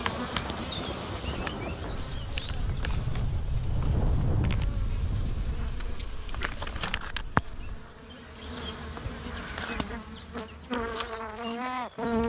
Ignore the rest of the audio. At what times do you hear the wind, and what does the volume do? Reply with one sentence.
The wind can be heard from 0.0 to 7.8 s, getting louder then quieter.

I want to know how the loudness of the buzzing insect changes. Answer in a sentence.
The loudness of the buzzing insect goes down, then up.